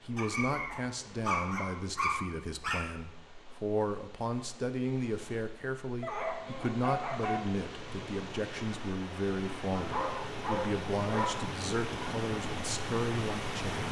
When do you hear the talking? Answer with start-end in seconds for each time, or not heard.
0.1-13.8.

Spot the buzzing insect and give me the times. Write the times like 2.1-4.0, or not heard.
not heard.